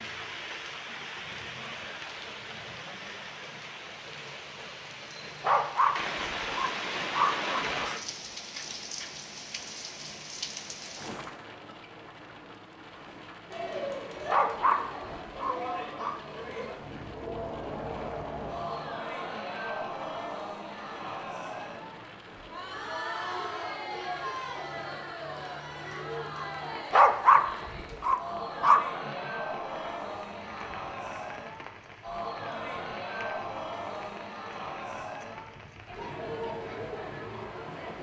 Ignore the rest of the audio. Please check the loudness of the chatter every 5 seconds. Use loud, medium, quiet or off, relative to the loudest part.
off, off, loud, loud, loud, loud, loud, loud.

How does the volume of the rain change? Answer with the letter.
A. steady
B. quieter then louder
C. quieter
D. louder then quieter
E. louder
C.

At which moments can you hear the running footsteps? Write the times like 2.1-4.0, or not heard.
not heard.